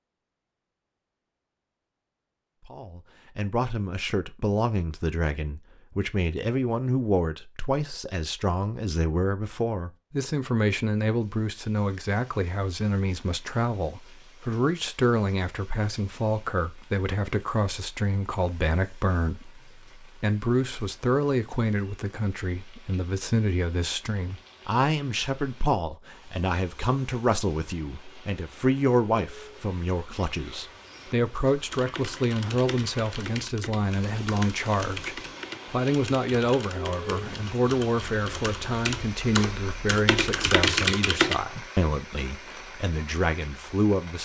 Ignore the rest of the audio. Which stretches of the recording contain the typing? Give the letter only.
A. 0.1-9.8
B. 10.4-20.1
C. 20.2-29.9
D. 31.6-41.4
D.